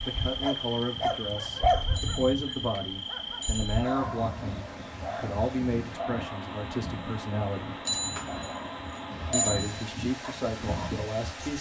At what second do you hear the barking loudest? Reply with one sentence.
The loudest moment of the barking is at 2 seconds.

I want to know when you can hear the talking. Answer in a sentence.
You can hear the talking from 0.0 to 7.8 s and from 9.3 to 11.5 s.